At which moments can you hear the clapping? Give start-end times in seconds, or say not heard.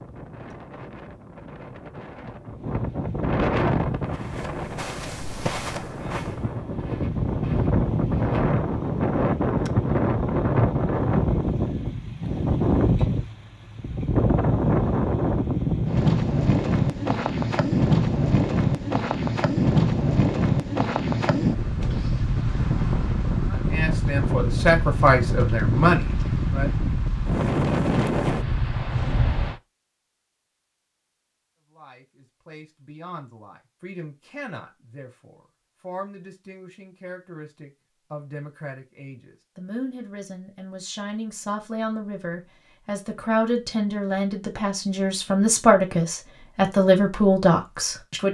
not heard.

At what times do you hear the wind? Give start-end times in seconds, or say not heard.
0.0-29.6.